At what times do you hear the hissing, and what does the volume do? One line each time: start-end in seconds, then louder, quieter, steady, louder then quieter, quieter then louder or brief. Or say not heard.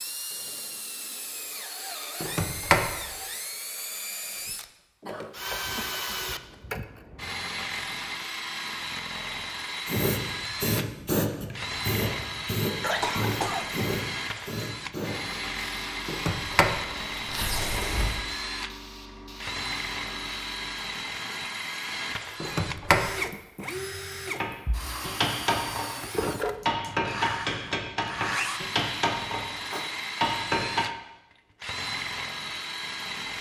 9.8-20.9 quieter.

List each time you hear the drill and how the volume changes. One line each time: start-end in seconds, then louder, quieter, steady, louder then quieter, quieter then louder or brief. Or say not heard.
0.0-33.3 steady.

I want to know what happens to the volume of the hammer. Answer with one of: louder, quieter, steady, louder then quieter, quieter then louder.
steady.